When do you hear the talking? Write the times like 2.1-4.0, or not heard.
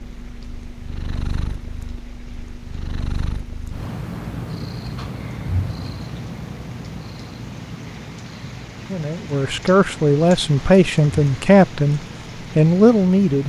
8.9-13.4.